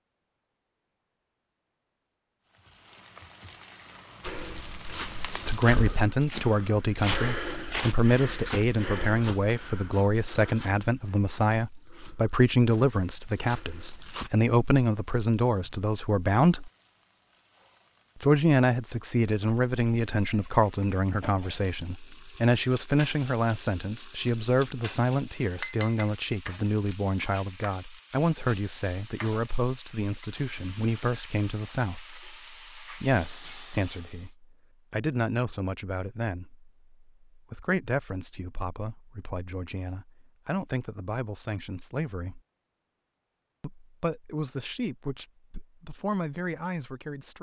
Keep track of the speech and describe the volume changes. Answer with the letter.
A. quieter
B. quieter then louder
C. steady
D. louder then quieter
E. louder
A.